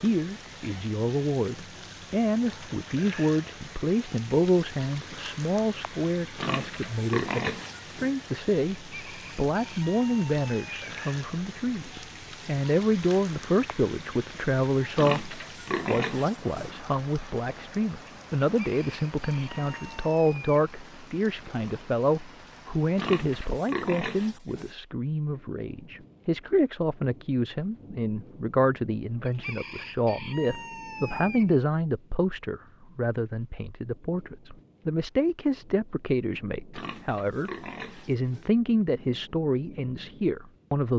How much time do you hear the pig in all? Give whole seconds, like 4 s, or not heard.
7 s.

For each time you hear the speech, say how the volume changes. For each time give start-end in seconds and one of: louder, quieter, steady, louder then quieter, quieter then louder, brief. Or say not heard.
0.0-40.9 steady.